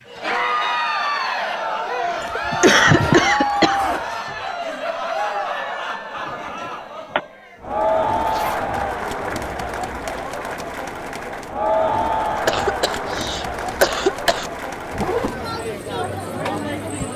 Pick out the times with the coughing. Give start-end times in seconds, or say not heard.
2.0-3.8, 6.2-7.2, 12.4-14.5.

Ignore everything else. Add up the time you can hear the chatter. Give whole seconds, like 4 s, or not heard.
17 s.